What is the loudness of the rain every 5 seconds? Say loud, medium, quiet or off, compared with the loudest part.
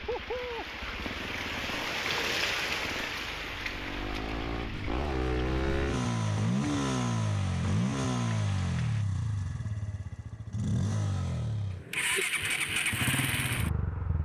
loud, quiet, off.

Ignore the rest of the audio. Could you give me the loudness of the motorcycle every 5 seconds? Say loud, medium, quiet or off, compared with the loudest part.
medium, loud, loud.